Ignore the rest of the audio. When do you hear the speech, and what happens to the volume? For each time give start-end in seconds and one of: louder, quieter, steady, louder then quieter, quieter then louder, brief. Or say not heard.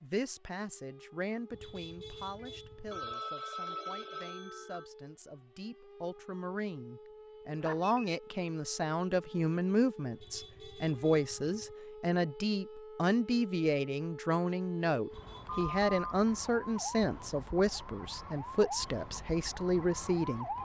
0.0-20.4 louder.